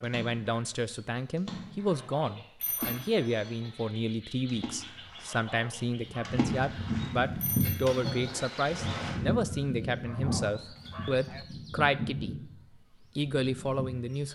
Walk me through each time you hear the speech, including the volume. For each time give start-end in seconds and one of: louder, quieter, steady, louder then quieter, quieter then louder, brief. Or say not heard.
0.0-12.5 steady
13.2-14.3 brief.